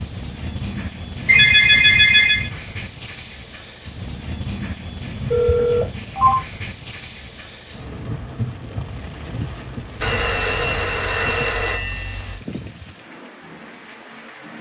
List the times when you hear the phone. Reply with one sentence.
You can hear the phone from 1.2 to 2.5 s, from 5.3 to 6.4 s and from 10.0 to 12.4 s.